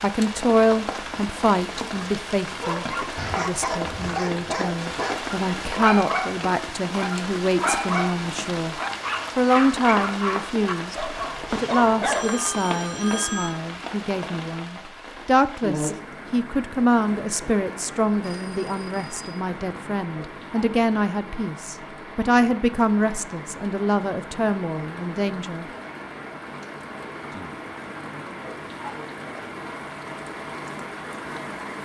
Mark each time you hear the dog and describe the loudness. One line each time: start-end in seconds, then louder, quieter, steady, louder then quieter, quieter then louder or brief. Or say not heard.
2.6-12.3 steady.